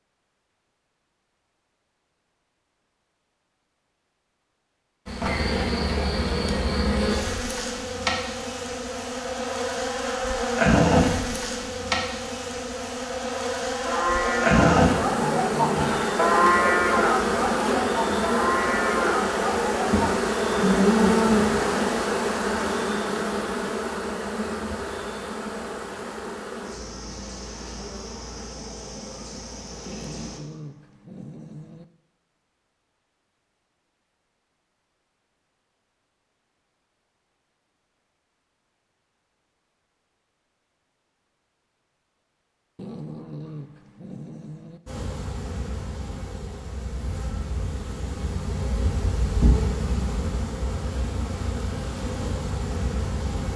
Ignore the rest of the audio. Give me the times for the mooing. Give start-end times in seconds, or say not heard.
13.8-21.6.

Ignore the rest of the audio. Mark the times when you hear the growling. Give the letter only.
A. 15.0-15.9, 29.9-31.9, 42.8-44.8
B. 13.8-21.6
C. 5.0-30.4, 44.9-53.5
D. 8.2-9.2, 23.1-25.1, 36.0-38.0
A.